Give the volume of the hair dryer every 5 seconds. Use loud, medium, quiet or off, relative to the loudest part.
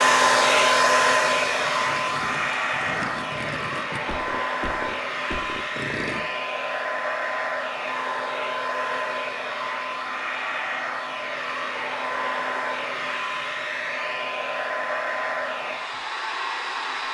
loud, medium, medium, medium.